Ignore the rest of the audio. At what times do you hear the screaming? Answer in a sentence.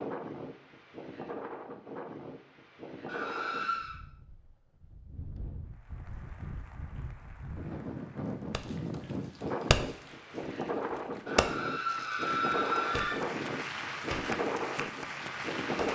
You can hear the screaming from 3.0 to 4.0 s and from 11.2 to 13.2 s.